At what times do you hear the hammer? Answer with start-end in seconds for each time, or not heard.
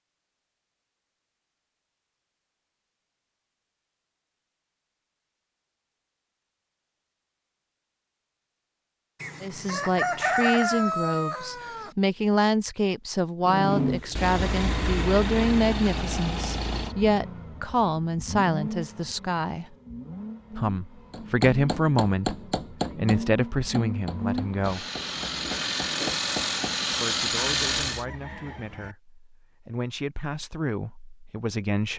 21.1-26.8.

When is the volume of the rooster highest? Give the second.
10 s.